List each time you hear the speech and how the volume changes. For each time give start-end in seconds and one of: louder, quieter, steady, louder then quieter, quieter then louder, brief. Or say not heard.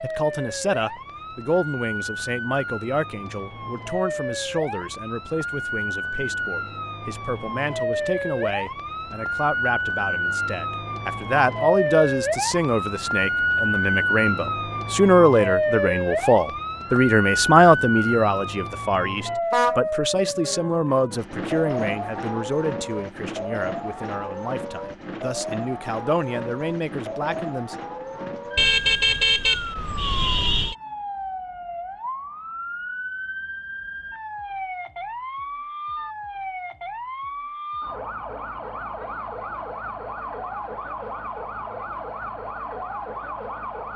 0.0-27.8 louder then quieter.